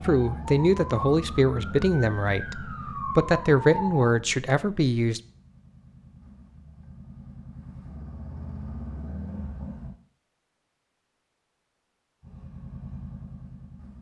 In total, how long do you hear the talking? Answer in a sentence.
You can hear the talking for 5 seconds altogether.